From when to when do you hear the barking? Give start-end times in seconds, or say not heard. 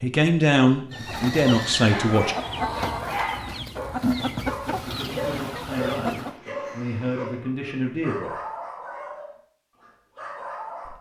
1.9-10.9.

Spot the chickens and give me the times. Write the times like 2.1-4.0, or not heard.
0.9-6.3.